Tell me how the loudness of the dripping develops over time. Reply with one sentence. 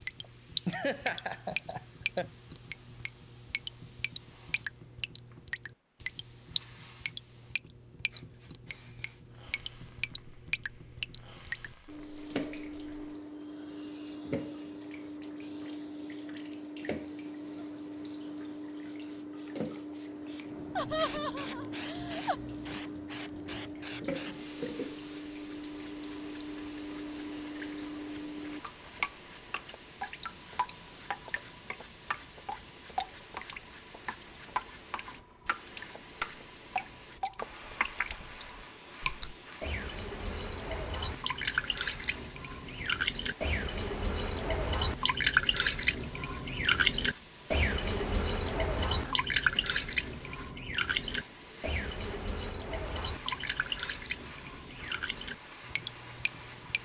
The loudness of the dripping goes up.